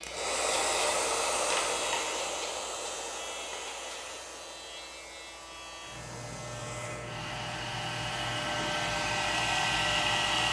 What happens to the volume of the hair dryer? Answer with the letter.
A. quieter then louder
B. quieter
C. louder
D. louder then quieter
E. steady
A.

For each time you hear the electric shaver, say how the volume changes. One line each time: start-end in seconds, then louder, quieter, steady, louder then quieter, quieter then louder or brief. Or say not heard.
0.0-10.4 quieter then louder.